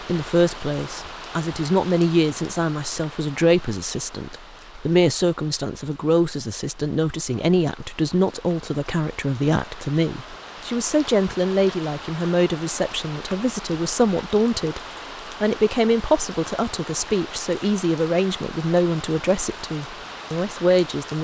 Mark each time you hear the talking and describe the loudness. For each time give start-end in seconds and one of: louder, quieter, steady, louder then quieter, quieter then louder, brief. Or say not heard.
0.0-14.8 steady
15.4-21.1 steady.